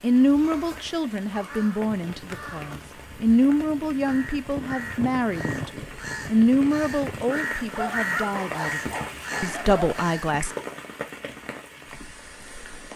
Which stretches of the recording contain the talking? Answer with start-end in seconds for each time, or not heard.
0.0-10.6.